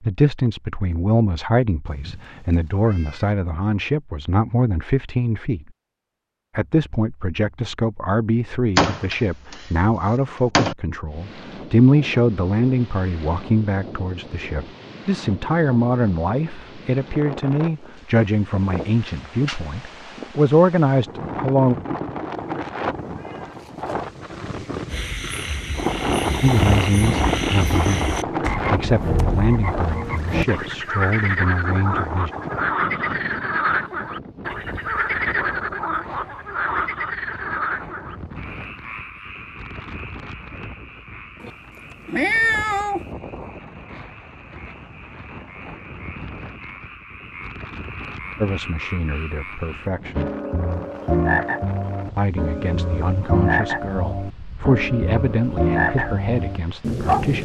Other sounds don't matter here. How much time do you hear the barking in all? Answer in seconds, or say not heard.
not heard.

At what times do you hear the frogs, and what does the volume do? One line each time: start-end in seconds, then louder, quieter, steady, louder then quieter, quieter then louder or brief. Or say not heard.
24.9-57.4 quieter then louder.